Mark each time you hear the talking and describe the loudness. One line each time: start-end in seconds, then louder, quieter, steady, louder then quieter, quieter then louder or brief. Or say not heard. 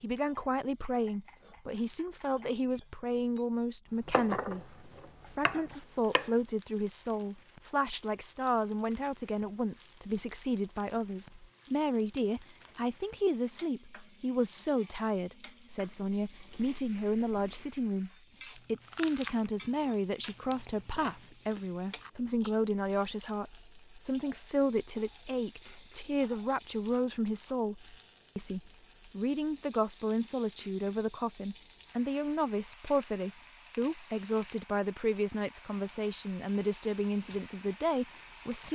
0.0-38.7 steady.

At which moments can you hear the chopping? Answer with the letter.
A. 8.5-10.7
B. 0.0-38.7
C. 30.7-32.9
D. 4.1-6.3
D.